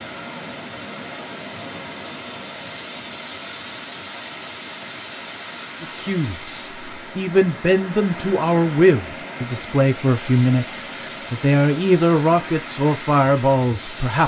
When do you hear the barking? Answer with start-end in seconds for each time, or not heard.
not heard.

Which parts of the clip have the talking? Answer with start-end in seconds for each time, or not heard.
5.8-14.2.